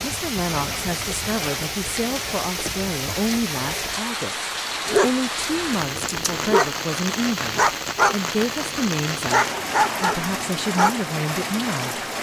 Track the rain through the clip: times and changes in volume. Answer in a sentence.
The rain can be heard from 0.0 to 12.1 s, at a steady volume.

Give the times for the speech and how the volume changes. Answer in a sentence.
You can hear the speech from 0.0 to 12.0 s, at a steady volume.